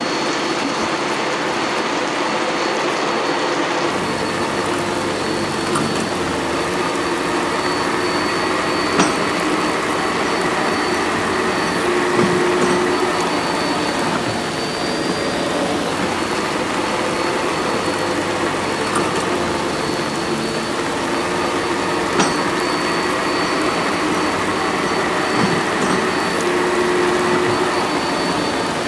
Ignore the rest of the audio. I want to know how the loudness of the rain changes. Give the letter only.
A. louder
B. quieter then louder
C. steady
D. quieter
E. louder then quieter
C.